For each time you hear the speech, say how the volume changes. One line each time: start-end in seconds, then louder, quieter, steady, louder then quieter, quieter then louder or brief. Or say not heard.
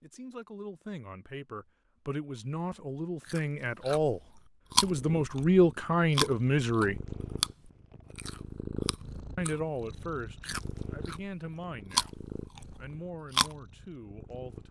0.0-7.0 louder
9.3-14.6 quieter.